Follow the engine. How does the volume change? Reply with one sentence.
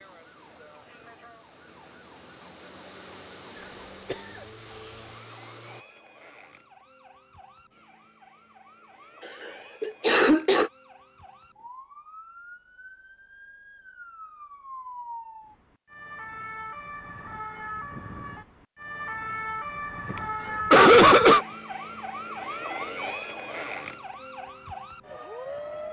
The loudness of the engine goes up.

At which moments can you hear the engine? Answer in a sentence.
You can hear the engine from 0.0 to 5.8 s.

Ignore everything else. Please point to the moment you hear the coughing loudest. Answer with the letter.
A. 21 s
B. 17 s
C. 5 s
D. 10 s
A.